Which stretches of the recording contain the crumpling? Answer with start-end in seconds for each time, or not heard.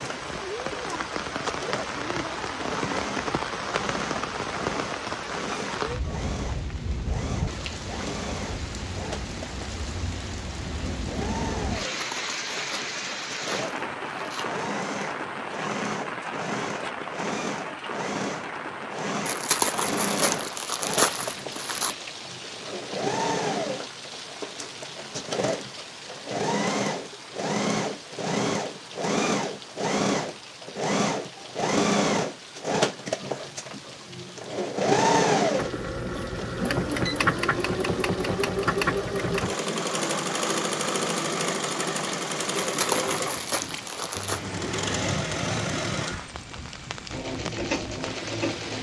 11.9-14.5, 19.2-21.9, 42.6-44.4.